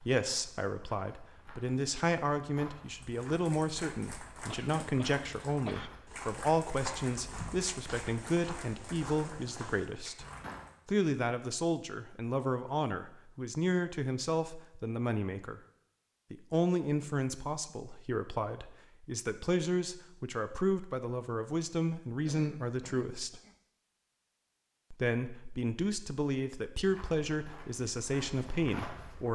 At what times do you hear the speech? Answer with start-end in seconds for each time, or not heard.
0.0-10.2, 10.8-15.6, 16.3-23.4, 24.9-29.3.